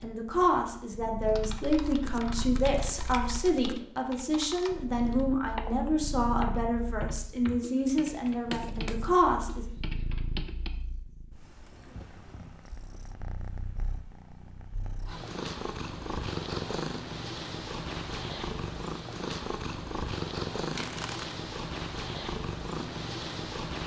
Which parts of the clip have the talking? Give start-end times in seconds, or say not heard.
0.0-9.7.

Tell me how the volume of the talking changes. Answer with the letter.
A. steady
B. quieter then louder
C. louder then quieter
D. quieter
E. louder
A.